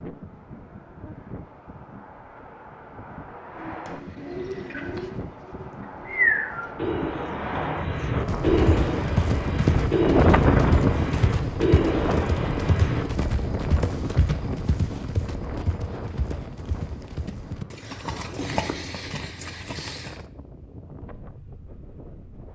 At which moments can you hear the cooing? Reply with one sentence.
You can hear the cooing from 3.5 to 13.1 s.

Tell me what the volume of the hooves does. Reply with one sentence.
The loudness of the hooves goes down.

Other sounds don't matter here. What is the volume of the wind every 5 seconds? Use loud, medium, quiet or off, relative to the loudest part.
quiet, medium, loud, quiet, quiet.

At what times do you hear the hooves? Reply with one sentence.
The hooves can be heard from 8.2 to 20.2 s.